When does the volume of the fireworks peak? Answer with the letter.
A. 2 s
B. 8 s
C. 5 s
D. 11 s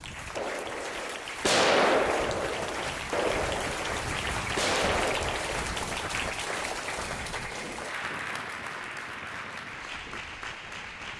A.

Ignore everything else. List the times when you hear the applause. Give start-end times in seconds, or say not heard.
0.0-11.1.